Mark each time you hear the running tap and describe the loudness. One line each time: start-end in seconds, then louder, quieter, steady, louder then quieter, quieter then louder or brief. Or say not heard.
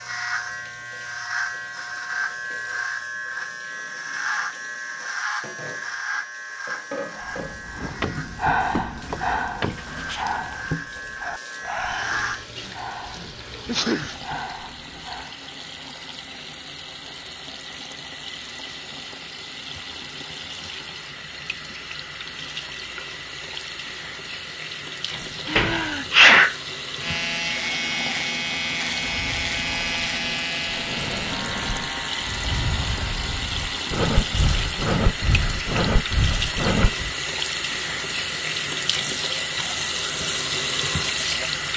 0.0-41.7 louder.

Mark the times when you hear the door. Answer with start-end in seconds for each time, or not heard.
7.8-9.8, 25.1-26.4.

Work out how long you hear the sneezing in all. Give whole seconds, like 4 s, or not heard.
3 s.